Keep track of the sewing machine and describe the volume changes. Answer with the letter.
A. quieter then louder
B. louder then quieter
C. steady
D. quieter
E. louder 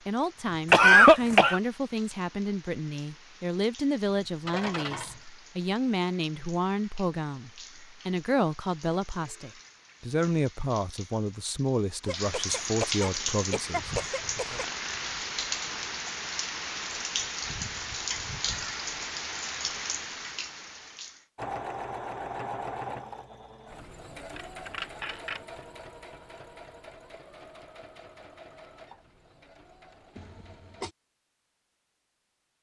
D.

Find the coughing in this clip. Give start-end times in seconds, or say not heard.
0.7-1.6, 12.1-14.7, 30.1-30.9.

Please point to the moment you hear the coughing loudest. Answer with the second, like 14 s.
1 s.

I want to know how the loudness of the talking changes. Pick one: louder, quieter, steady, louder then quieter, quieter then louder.
steady.